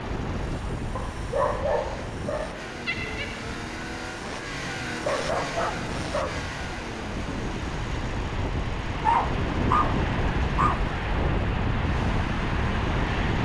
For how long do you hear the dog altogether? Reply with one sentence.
You can hear the dog for 5 seconds altogether.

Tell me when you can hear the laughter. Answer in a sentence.
The laughter can be heard from 2.9 to 3.5 s.